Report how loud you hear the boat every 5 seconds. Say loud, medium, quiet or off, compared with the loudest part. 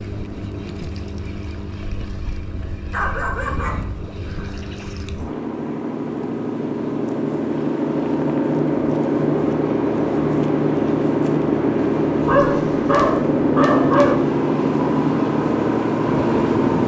quiet, loud, loud, loud.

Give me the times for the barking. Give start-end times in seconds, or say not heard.
2.5-4.1, 12.2-14.2.